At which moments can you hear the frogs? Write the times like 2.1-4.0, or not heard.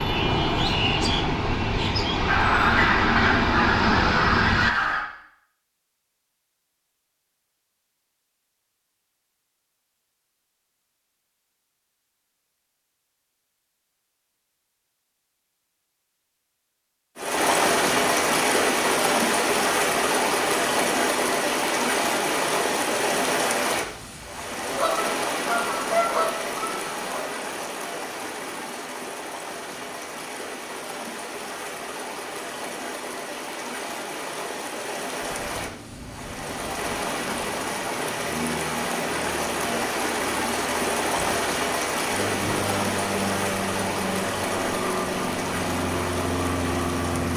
not heard.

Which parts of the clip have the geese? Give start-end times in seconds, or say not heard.
2.2-5.0, 24.7-27.2.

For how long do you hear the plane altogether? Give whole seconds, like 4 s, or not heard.
17 s.